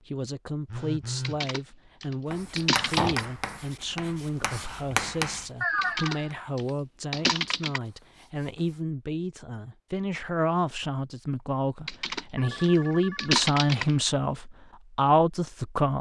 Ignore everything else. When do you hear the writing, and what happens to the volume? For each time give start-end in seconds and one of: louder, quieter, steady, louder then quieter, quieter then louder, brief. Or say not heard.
2.3-8.8 quieter.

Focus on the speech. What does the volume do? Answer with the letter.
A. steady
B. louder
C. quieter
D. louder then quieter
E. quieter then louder
B.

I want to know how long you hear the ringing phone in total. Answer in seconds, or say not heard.
3 s.